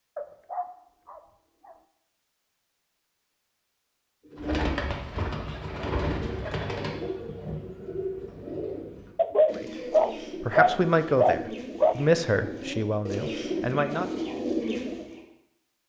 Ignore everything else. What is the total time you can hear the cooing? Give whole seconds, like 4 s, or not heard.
11 s.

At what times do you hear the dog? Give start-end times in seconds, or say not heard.
0.1-1.8, 9.2-11.9.